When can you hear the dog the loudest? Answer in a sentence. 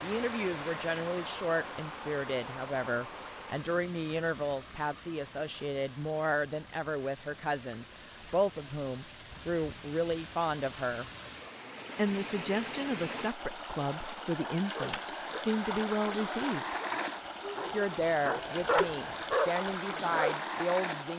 The volume of the dog peaks at 19 seconds.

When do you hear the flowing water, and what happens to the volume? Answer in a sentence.
You can hear the flowing water from 0.0 to 21.1 s, getting quieter then louder.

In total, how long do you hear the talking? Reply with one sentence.
You can hear the talking for 19 seconds altogether.